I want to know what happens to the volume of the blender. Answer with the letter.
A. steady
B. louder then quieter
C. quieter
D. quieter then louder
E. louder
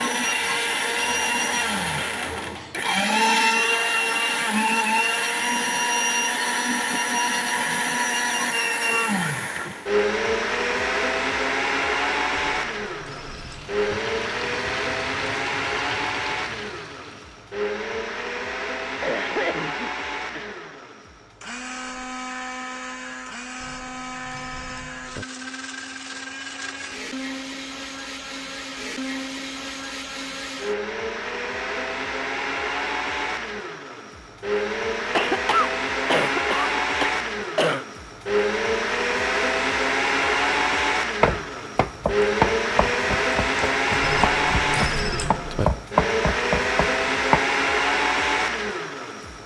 D.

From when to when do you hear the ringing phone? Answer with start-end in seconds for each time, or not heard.
12.3-14.0, 23.6-25.2, 44.0-45.6.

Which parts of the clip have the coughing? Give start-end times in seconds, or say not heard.
2.1-2.9, 19.0-20.8, 35.1-37.9.